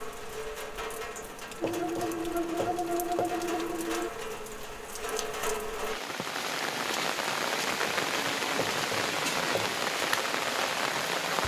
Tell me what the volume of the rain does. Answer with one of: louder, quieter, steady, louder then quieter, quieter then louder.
louder.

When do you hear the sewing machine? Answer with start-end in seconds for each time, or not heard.
1.6-4.1.